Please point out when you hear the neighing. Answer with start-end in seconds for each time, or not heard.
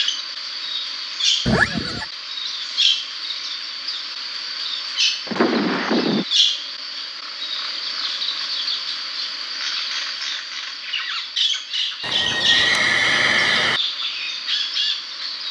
1.4-2.0, 5.2-6.2, 12.0-13.8.